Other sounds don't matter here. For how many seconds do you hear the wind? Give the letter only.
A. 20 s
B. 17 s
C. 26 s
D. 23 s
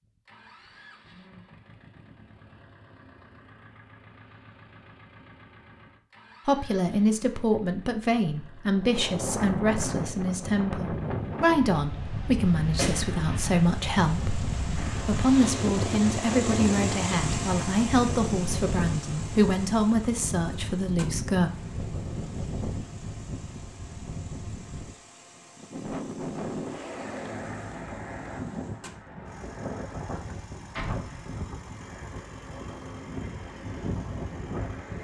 C.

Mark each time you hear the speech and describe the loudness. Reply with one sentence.
The speech can be heard from 6.5 to 21.5 s, at a steady volume.